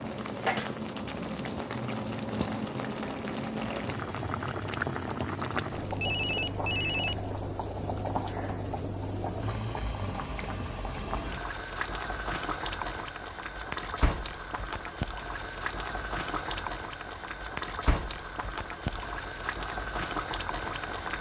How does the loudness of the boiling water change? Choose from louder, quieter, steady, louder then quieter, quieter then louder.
steady.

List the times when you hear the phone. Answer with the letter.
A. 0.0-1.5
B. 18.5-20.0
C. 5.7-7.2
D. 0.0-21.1
C.